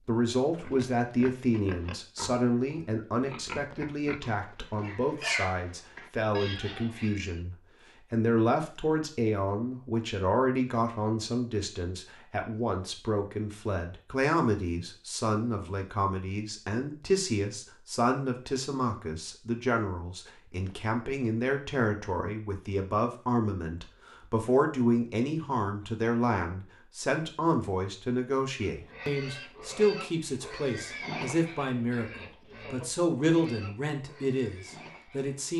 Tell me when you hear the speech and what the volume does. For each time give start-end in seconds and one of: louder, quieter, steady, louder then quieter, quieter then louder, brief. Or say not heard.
0.1-35.5 steady.